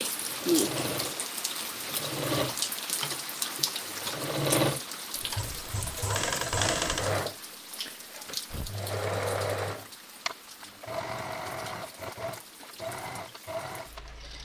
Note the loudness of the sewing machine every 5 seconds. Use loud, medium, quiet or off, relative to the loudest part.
loud, loud, medium.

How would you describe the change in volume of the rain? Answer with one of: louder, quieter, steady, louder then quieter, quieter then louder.
quieter.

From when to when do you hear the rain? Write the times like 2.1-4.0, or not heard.
0.0-14.3.